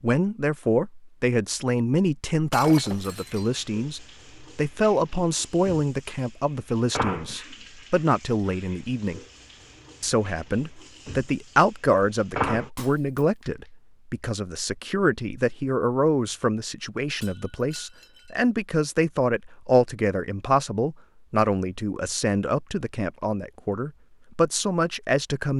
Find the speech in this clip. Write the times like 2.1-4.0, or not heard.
0.0-9.2, 10.0-25.5.